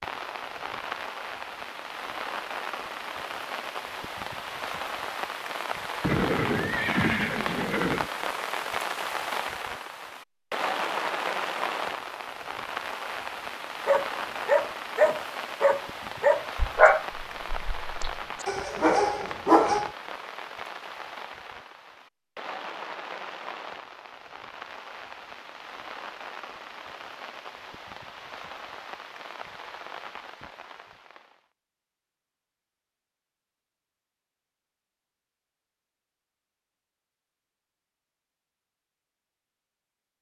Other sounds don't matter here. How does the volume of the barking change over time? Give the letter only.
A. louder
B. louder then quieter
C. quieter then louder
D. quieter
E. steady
C.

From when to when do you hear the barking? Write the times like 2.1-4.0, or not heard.
13.8-19.9.